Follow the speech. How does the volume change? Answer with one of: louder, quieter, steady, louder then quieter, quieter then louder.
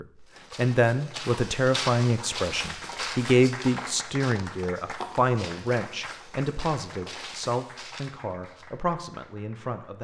quieter.